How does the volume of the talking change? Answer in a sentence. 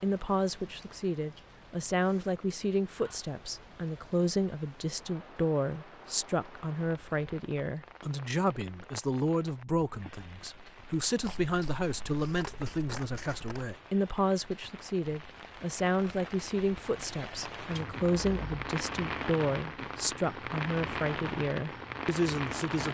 The volume of the talking stays about the same.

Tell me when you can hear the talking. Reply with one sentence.
You can hear the talking from 0.0 to 22.8 s.